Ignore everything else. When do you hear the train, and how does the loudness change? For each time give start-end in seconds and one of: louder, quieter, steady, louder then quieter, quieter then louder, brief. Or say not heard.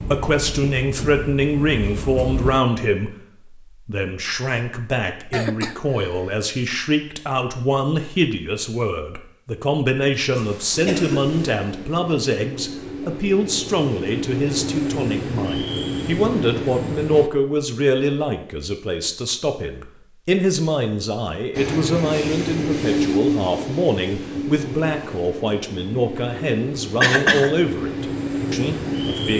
0.0-2.6 brief
10.7-17.3 louder
21.5-29.3 quieter then louder.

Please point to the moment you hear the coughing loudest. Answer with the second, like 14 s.
27 s.